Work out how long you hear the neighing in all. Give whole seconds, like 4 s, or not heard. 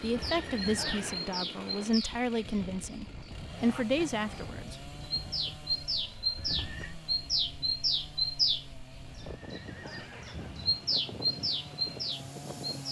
4 s.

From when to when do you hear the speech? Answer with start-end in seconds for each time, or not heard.
0.0-4.8.